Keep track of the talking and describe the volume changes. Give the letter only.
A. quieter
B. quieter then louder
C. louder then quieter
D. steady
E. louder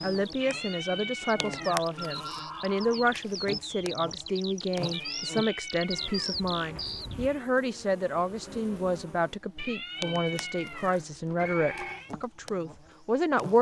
D.